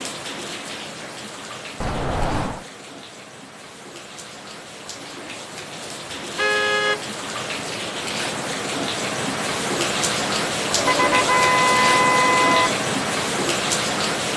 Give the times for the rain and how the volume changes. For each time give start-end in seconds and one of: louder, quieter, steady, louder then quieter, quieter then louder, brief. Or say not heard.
0.0-14.3 louder.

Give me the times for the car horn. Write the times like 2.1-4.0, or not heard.
1.8-2.6, 6.3-7.0, 10.8-12.8.